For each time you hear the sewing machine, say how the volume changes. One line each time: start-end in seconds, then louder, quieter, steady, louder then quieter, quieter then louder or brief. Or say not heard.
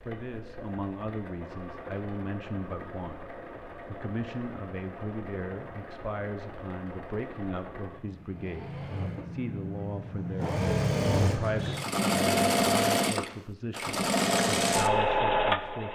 0.0-15.9 louder.